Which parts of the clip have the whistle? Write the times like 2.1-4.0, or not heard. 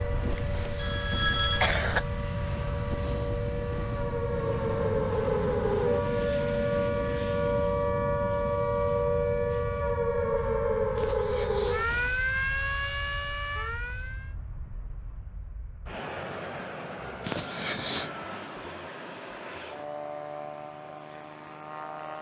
not heard.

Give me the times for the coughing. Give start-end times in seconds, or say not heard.
0.1-2.0, 10.9-12.2, 17.2-18.1.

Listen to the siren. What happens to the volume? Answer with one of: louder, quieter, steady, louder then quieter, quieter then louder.
louder.